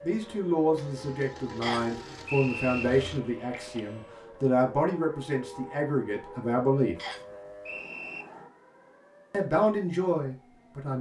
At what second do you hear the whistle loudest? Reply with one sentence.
The loudest moment of the whistle is at 2 seconds.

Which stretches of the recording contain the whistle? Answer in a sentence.
The whistle can be heard from 1.6 to 2.9 s and from 7.0 to 8.2 s.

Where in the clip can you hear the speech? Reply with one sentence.
The speech can be heard from 0.0 to 7.0 s and from 9.3 to 10.9 s.